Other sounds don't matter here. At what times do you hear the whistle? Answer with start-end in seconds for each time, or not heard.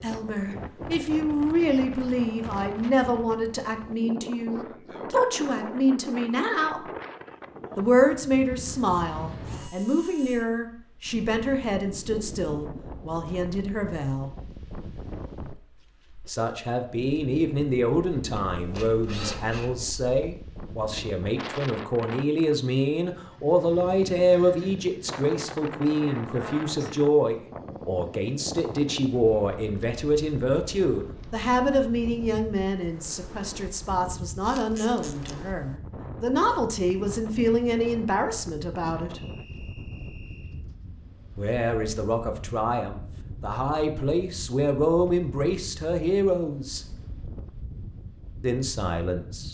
39.1-40.6.